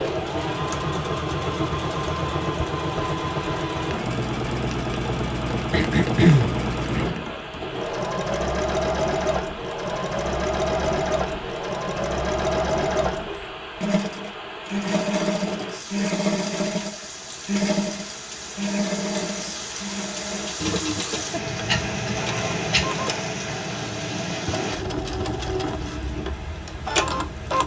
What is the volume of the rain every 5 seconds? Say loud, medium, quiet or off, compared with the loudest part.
medium, medium, medium, medium, loud, medium.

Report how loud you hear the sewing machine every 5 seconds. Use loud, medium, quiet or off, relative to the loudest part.
loud, loud, loud, loud, medium, loud.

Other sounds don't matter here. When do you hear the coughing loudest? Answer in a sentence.
The loudest moment of the coughing is at 6 seconds.